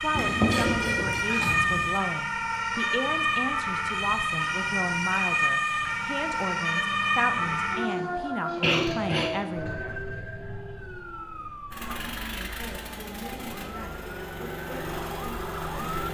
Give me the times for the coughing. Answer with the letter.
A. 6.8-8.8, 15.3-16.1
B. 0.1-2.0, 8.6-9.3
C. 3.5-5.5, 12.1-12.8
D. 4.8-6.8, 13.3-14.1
B.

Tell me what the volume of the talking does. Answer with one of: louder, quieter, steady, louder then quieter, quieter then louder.
quieter.